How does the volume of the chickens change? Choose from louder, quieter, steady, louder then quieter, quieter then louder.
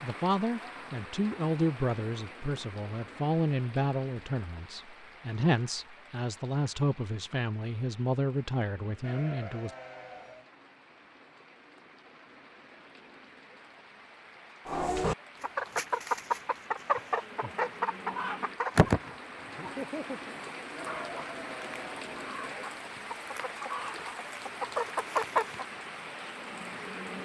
quieter then louder.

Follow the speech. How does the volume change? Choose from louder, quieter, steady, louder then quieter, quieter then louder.
steady.